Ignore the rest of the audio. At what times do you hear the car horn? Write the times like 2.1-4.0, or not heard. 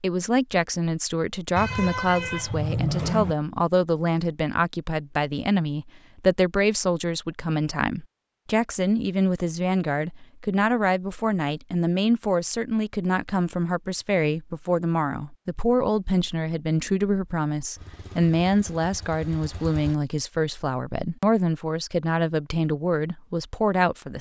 1.6-3.4.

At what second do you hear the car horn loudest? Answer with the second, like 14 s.
3 s.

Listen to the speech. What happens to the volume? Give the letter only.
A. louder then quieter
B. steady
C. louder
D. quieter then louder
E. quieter
B.